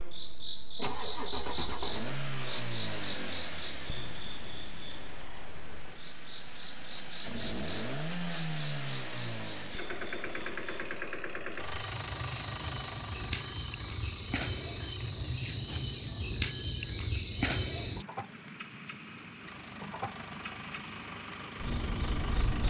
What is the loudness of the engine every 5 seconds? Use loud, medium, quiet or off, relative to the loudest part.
loud, loud, loud, quiet, loud.